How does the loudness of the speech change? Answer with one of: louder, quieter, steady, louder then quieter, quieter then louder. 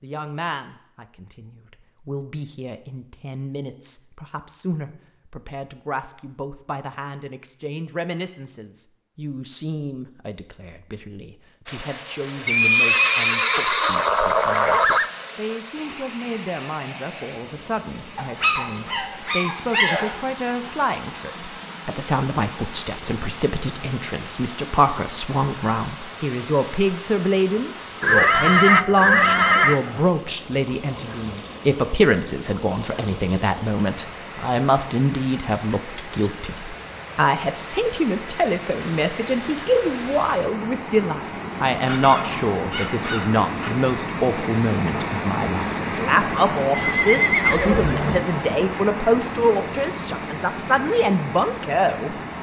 louder.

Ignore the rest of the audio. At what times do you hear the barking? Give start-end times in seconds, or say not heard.
18.1-20.1, 41.8-43.7.